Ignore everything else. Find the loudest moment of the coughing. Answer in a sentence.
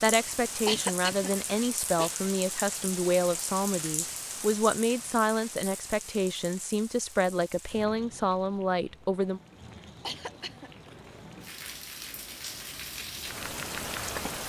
The loudest moment of the coughing is at 1 second.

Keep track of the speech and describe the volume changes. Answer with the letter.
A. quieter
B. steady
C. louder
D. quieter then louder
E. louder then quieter
B.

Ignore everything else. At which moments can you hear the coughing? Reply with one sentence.
The coughing can be heard from 0.5 to 2.1 s and from 9.6 to 10.9 s.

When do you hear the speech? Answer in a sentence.
You can hear the speech from 0.0 to 9.4 s.